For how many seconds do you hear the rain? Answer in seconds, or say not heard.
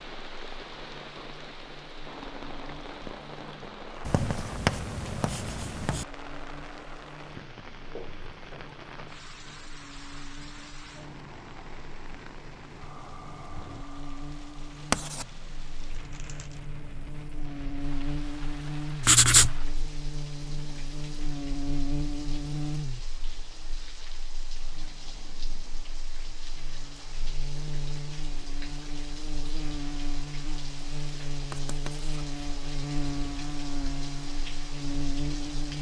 36 s.